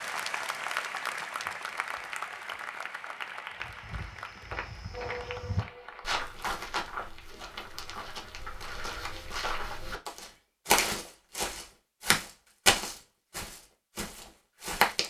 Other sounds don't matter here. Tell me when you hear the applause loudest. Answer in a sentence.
The volume of the applause peaks at 1 second.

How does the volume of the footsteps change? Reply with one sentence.
The loudness of the footsteps goes up.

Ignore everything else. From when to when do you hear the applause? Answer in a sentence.
You can hear the applause from 0.0 to 6.2 s.